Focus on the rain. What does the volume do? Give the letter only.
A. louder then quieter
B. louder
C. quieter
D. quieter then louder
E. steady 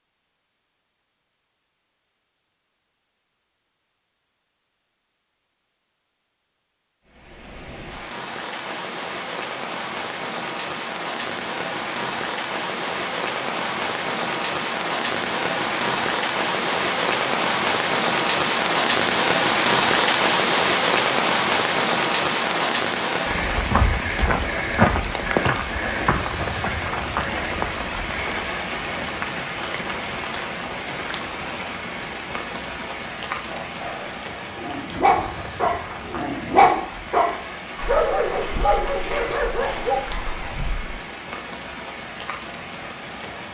A.